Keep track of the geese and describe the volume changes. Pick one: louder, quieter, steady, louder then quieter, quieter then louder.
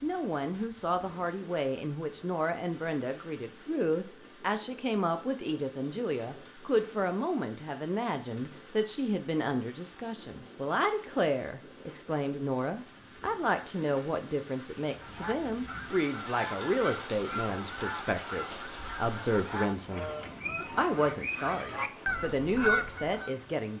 louder.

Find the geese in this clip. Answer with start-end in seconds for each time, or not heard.
15.0-23.3.